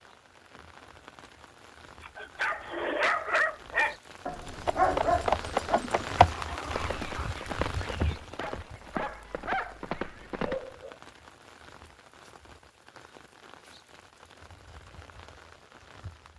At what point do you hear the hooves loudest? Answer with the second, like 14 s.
6 s.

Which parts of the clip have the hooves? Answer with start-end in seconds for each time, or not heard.
4.5-10.6.